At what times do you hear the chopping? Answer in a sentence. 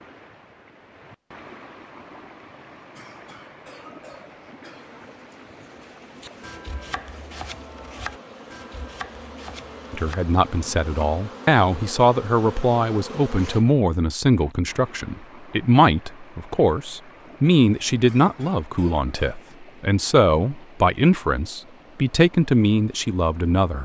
You can hear the chopping from 6.2 to 11.2 s.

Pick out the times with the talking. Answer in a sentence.
You can hear the talking from 9.9 to 23.8 s.